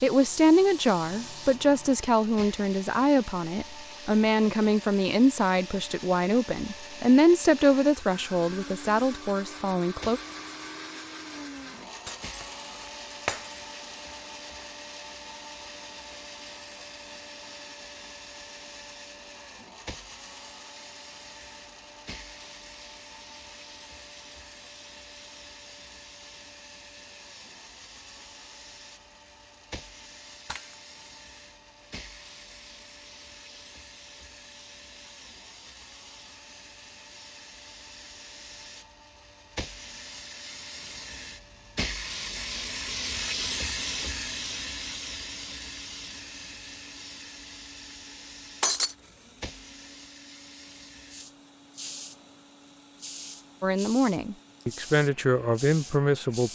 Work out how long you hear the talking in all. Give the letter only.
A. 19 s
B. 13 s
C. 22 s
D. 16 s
B.